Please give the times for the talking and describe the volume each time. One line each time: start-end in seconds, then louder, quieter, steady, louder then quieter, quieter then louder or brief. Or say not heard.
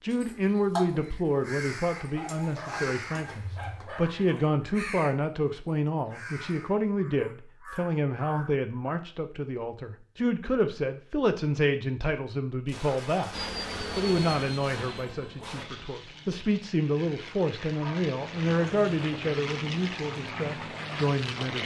0.0-21.6 steady.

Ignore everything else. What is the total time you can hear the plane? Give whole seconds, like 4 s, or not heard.
8 s.